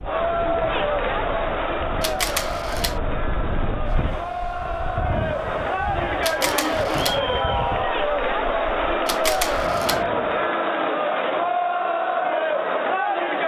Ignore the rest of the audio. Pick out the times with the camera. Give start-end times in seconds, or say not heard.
2.0-3.0, 6.2-7.2, 9.1-10.0.